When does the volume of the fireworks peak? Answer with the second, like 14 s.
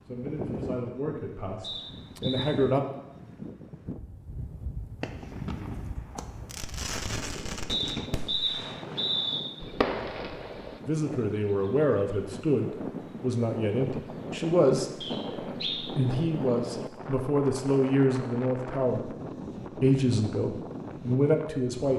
10 s.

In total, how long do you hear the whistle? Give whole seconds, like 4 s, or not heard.
4 s.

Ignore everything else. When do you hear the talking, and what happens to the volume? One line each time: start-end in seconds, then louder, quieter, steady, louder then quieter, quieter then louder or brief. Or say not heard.
0.0-2.8 brief
10.8-21.9 steady.